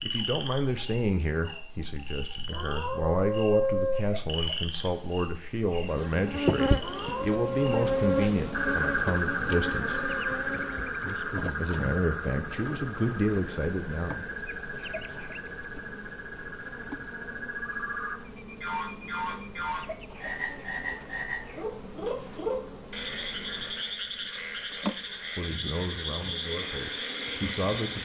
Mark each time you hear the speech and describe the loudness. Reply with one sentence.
You can hear the speech from 0.0 to 10.0 s, at a steady volume; briefly from 11.6 to 14.2 s; and briefly from 25.4 to 28.0 s.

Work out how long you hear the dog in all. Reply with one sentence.
You can't hear the dog here.